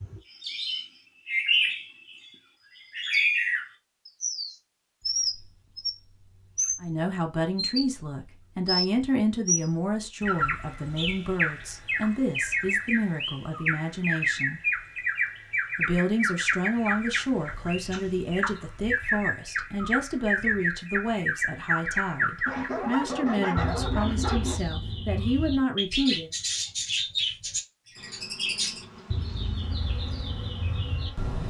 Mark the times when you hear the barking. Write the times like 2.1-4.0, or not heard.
22.4-24.6.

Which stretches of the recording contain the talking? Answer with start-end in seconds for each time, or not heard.
6.8-14.6, 15.8-26.3.